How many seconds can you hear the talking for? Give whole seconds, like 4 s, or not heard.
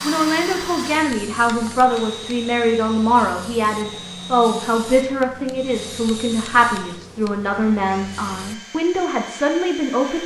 10 s.